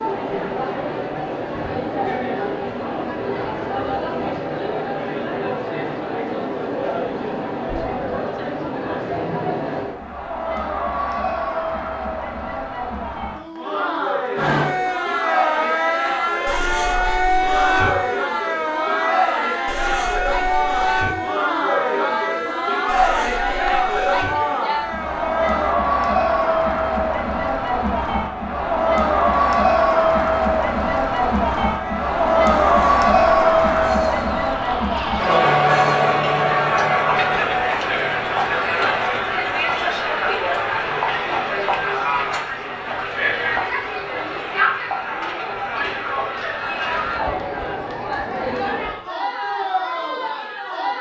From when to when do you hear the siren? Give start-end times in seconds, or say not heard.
14.3-25.8, 31.6-36.1.